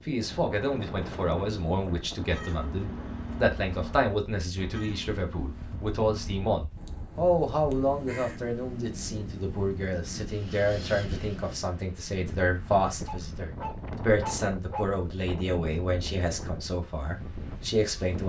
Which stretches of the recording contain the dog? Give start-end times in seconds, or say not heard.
13.1-14.8.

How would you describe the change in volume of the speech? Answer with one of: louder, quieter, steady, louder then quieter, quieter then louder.
steady.